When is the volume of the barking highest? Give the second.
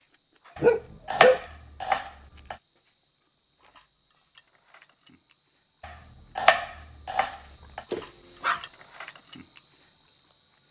1 s.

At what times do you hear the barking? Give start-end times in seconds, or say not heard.
0.6-1.4, 7.9-8.7.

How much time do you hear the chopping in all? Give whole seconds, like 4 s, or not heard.
4 s.